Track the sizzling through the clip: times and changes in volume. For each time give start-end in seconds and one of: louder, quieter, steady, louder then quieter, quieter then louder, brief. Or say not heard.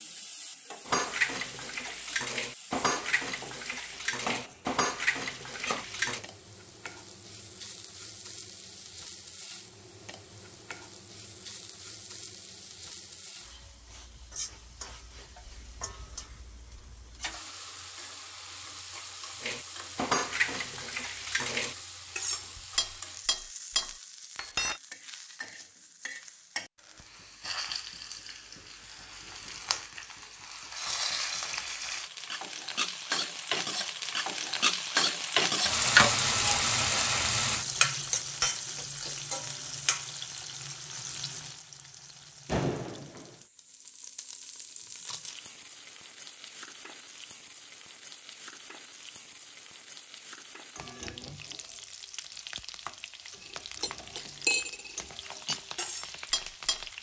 0.0-56.9 louder then quieter.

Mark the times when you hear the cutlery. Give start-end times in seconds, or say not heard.
0.8-6.2, 19.4-24.8, 53.5-56.9.